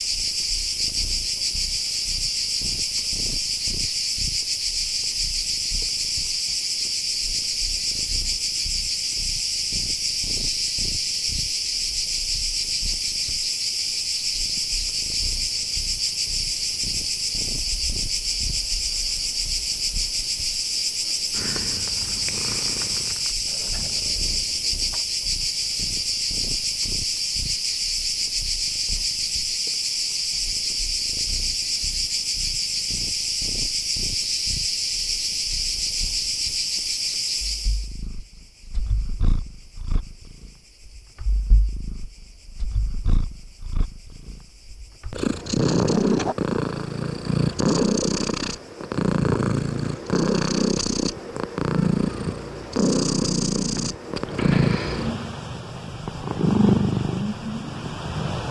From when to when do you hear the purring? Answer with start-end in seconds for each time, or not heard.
0.1-58.4.